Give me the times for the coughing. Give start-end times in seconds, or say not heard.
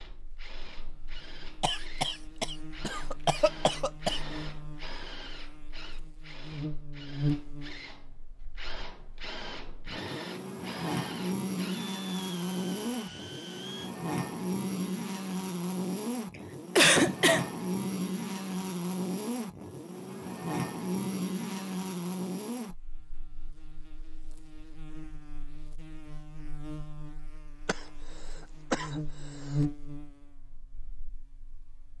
1.6-4.2, 16.8-17.4, 27.6-29.6.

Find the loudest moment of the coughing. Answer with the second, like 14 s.
17 s.